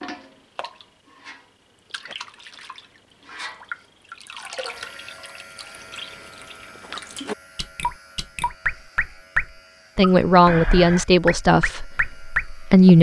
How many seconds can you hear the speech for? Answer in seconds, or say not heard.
3 s.